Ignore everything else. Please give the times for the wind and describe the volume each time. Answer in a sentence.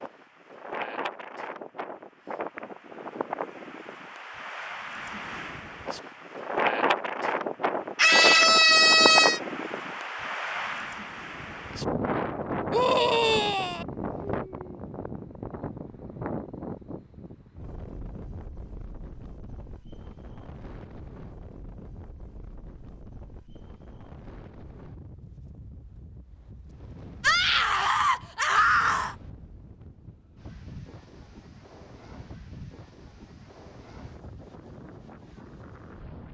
You can hear the wind from 0.0 to 36.2 s, getting quieter.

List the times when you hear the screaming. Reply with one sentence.
You can hear the screaming from 8.0 to 9.4 s, from 12.7 to 13.8 s and from 27.2 to 29.1 s.